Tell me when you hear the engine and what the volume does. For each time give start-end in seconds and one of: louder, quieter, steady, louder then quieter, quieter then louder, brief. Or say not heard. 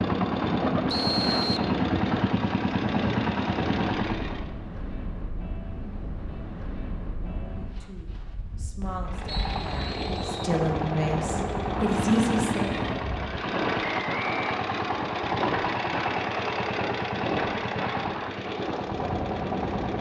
0.0-4.5 steady
9.1-19.9 steady.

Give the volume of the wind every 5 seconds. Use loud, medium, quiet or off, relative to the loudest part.
loud, medium, loud, loud.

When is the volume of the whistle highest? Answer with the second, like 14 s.
1 s.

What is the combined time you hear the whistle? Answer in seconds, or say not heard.
3 s.